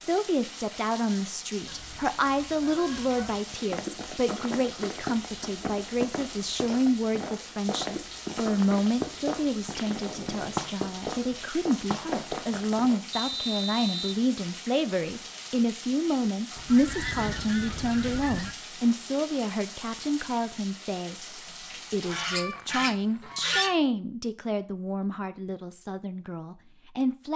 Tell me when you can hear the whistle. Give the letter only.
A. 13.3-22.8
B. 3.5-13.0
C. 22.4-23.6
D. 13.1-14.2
D.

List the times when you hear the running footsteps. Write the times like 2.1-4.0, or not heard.
3.5-13.0.